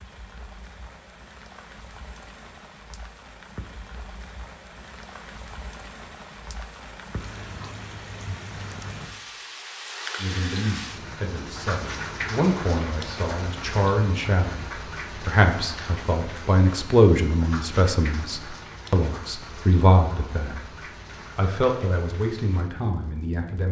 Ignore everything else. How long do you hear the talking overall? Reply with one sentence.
You can hear the talking for 13 seconds altogether.